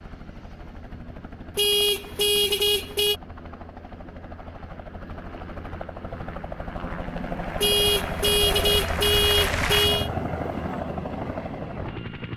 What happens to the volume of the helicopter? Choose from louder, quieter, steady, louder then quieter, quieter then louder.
louder.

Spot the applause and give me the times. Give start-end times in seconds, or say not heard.
7.3-9.9.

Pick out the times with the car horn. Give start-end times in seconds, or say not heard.
1.6-3.2, 7.6-10.1.